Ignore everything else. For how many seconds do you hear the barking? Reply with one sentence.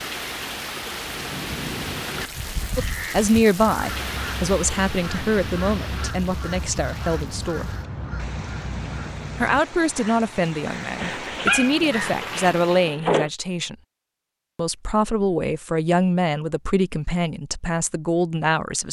The barking can be heard for 2 seconds in total.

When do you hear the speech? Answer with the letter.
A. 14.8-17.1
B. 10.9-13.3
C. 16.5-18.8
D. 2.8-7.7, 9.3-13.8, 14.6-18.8
D.